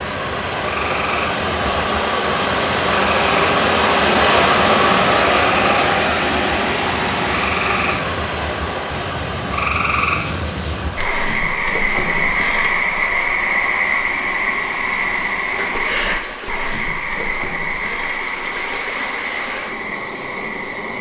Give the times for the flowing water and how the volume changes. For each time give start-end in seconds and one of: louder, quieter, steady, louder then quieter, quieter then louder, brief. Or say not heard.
0.0-20.9 quieter.